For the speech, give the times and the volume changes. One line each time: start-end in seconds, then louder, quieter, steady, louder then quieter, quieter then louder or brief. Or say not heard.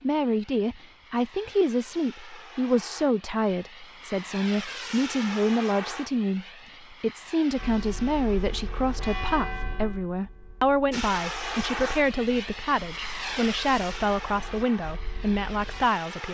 0.0-16.2 steady.